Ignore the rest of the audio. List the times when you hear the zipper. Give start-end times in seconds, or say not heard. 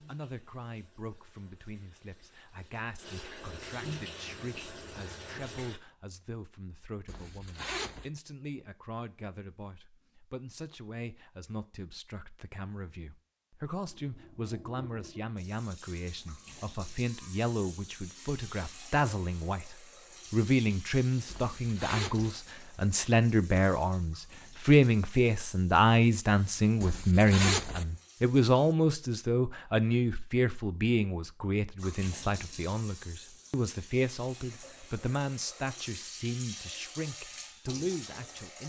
7.0-8.1, 21.2-22.4, 26.8-27.9.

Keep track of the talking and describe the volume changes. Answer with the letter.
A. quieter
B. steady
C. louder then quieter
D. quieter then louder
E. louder
C.